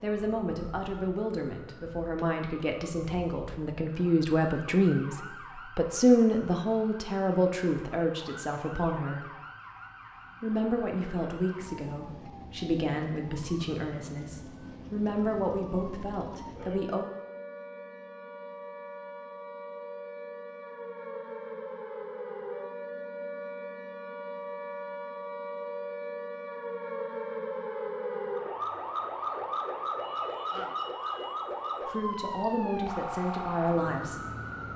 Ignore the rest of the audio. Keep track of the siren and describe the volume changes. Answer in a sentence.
The volume of the siren goes up.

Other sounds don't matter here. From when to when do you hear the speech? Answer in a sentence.
You can hear the speech from 0.0 to 9.3 s, from 10.4 to 17.1 s and from 31.9 to 34.2 s.